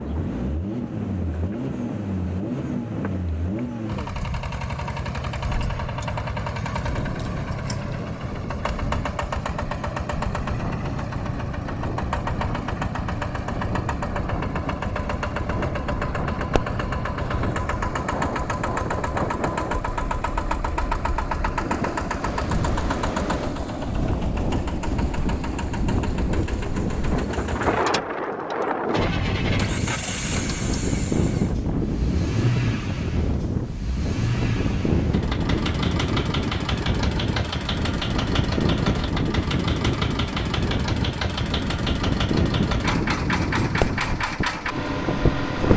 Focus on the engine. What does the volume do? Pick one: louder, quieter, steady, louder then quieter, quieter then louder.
steady.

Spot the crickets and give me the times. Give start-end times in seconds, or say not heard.
not heard.